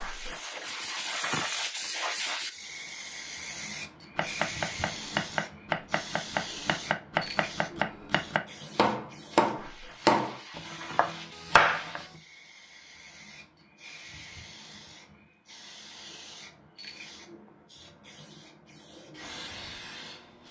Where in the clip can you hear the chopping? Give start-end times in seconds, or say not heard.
4.2-12.1.